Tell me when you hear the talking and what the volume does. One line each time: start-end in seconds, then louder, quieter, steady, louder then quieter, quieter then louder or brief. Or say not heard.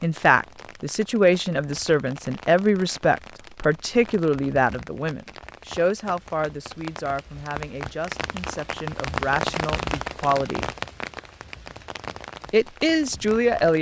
0.0-10.7 quieter
12.5-13.7 brief.